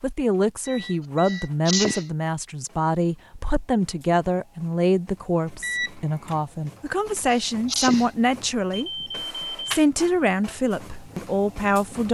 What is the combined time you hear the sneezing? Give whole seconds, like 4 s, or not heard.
2 s.